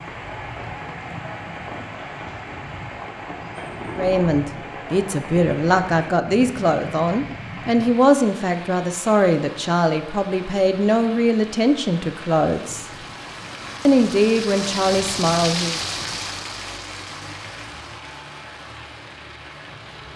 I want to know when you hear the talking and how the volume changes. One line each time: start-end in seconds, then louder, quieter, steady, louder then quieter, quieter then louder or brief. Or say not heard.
4.0-12.8 steady
13.8-15.8 brief.